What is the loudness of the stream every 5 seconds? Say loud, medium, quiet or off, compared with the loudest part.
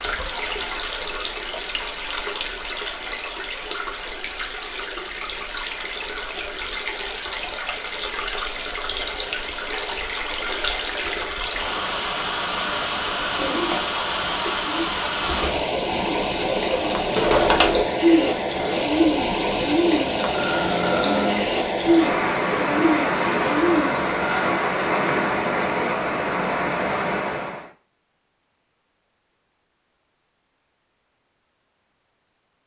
medium, medium, loud, loud, loud, loud, off.